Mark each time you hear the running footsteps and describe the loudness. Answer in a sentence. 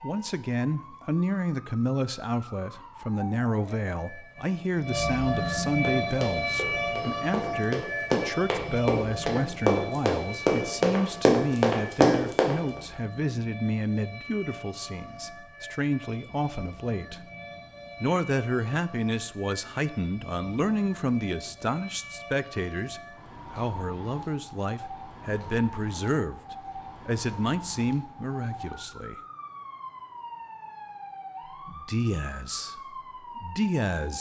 The running footsteps can be heard from 5.8 to 12.6 s, getting louder.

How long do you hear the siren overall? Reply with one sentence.
You can hear the siren for 34 seconds altogether.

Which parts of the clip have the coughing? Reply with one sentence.
You can't hear the coughing here.